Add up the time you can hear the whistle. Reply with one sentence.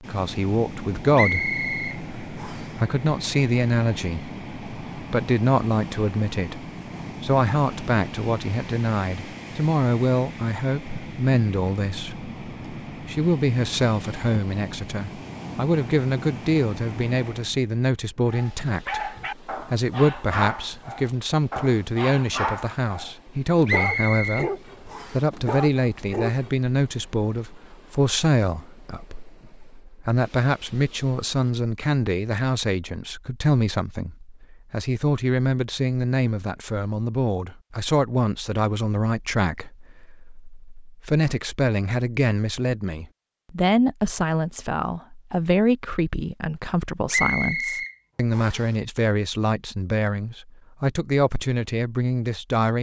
The whistle can be heard for 5 seconds in total.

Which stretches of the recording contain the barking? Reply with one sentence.
The barking can be heard from 18.2 to 26.6 s.